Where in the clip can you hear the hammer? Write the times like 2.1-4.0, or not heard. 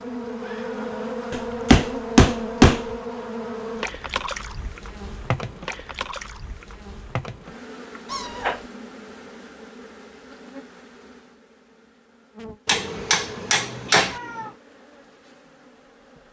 1.3-2.8, 12.7-14.2.